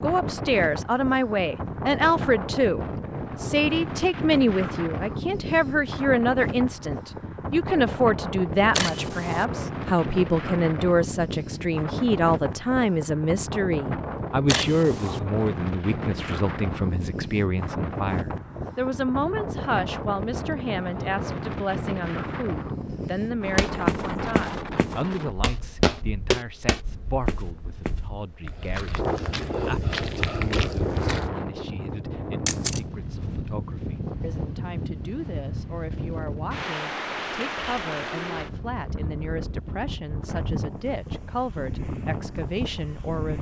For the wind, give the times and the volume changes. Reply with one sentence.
The wind can be heard from 0.0 to 43.3 s, at a steady volume.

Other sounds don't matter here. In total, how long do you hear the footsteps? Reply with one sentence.
You can hear the footsteps for 8 seconds altogether.